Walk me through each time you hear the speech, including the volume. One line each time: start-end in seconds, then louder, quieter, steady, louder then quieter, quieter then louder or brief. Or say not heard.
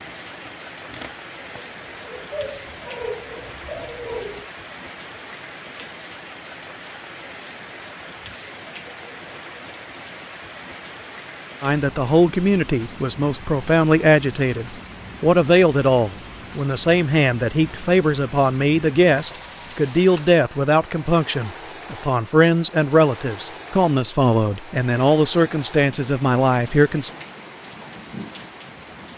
11.6-27.1 steady.